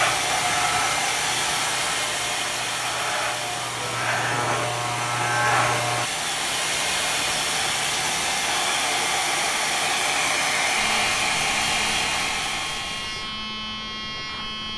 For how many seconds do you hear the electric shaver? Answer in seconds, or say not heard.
10 s.